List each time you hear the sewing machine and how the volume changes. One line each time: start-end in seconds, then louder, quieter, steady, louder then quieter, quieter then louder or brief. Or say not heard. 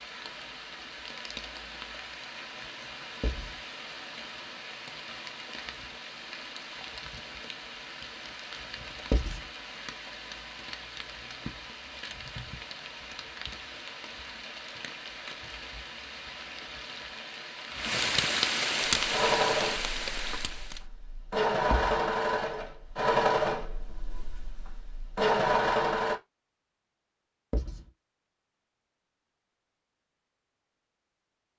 18.9-26.1 steady.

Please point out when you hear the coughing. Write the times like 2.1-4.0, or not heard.
not heard.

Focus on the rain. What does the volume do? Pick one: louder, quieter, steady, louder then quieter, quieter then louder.
louder.